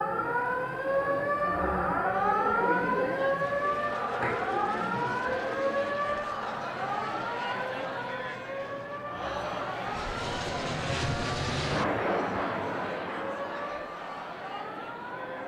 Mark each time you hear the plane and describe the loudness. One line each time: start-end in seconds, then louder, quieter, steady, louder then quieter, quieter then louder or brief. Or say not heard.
3.3-15.4 louder then quieter.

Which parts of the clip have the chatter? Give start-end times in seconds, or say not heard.
0.1-15.4.